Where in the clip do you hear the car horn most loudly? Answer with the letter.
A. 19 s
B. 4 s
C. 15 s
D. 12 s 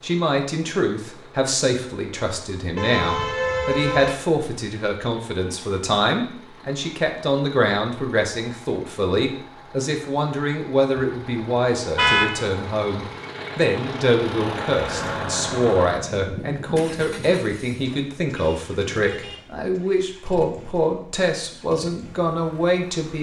D.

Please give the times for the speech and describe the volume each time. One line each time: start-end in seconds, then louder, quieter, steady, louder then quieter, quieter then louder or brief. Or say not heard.
0.0-23.1 steady.